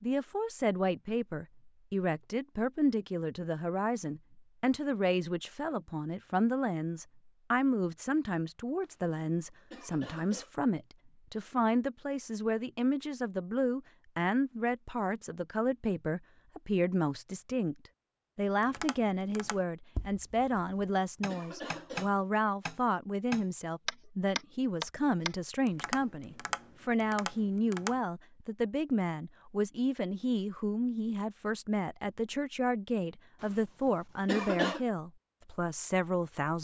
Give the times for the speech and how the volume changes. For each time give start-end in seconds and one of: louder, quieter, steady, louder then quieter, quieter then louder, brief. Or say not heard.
0.0-36.5 steady.